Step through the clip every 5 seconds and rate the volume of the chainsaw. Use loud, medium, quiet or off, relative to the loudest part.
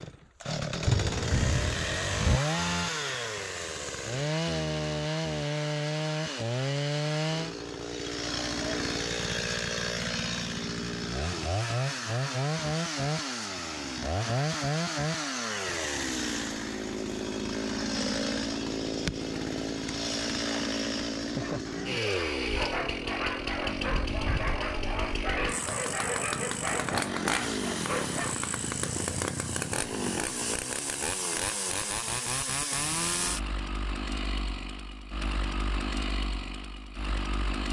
loud, loud, loud, loud, loud, loud, loud, medium.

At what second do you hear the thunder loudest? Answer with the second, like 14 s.
1 s.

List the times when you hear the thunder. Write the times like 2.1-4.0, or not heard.
0.8-2.4.